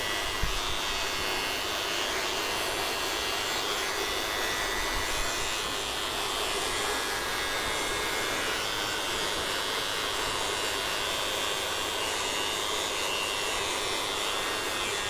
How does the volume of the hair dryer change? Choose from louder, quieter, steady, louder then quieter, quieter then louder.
steady.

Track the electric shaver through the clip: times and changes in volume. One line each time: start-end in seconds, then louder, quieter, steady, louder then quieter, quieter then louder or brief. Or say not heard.
0.0-15.0 steady.